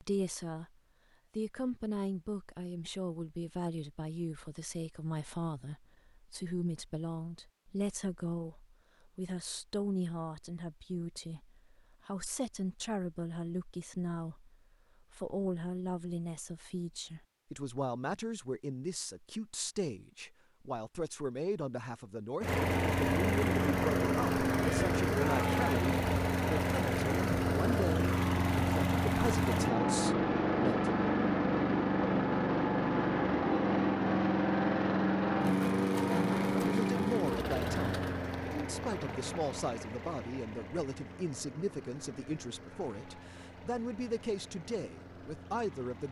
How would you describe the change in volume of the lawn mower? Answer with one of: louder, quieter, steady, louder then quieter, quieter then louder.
quieter.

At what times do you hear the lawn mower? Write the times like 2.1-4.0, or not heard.
22.4-46.0.